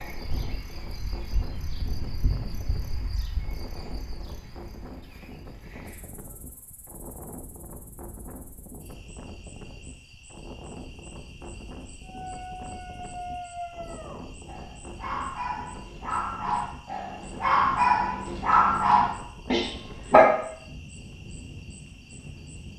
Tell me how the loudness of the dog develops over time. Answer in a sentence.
The volume of the dog goes up.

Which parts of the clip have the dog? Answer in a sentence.
The dog can be heard from 12.1 to 20.3 s.